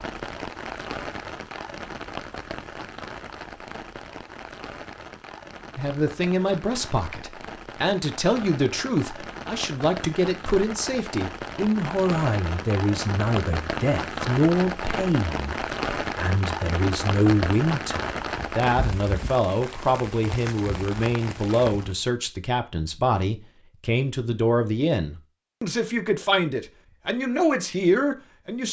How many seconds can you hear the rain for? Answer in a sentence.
The rain can be heard for 22 seconds in total.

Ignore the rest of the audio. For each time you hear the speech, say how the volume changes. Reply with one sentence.
The speech can be heard from 5.8 to 28.6 s, at a steady volume.